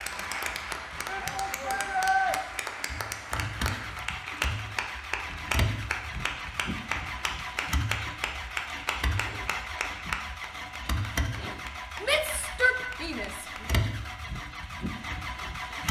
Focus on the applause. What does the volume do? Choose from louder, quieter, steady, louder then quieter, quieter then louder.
quieter.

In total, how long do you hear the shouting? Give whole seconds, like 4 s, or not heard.
3 s.